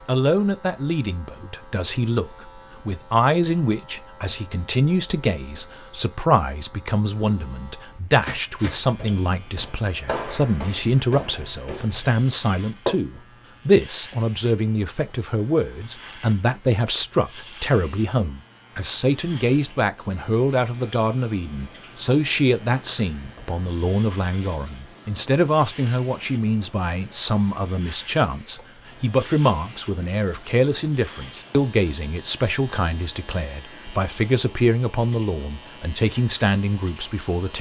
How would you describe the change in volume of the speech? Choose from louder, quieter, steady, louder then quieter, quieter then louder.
steady.